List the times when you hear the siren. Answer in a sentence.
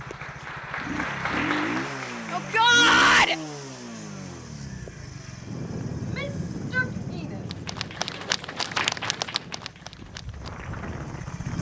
You can't hear the siren here.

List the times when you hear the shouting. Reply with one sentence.
The shouting can be heard from 2.3 to 3.4 s and from 6.0 to 7.6 s.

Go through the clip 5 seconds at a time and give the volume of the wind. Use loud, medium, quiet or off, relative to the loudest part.
off, loud, loud.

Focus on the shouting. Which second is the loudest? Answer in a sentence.
The loudest moment of the shouting is at 3 seconds.